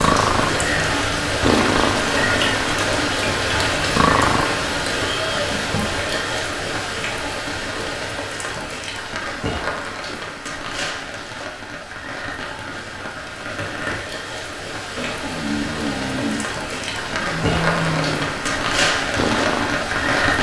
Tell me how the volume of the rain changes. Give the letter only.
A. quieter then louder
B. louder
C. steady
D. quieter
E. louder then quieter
A.